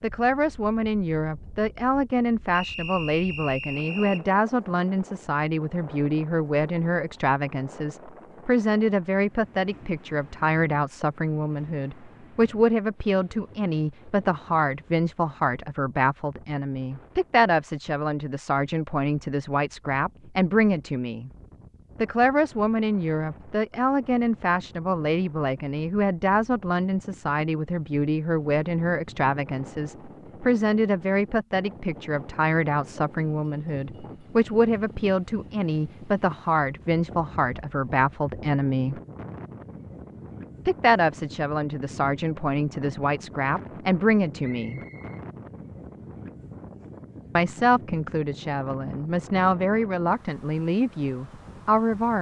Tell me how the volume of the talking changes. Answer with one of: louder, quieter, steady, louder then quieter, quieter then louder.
steady.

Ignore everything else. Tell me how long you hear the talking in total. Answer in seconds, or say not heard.
47 s.